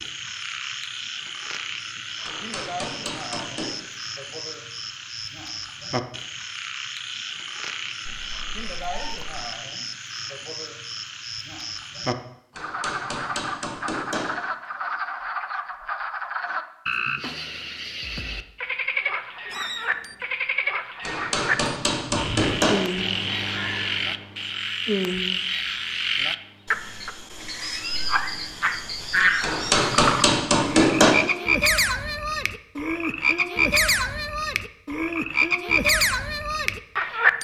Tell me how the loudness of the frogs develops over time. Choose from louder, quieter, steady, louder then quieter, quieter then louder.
louder.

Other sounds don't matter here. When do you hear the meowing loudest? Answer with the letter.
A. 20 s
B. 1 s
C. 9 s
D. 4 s
A.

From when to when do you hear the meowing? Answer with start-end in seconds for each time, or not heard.
8.1-9.3, 19.5-20.2.